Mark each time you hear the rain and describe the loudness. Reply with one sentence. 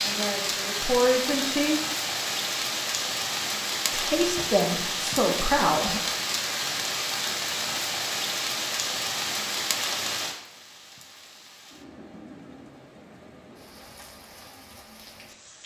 You can hear the rain from 0.0 to 15.6 s, getting quieter.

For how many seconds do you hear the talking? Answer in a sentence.
The talking can be heard for 4 seconds in total.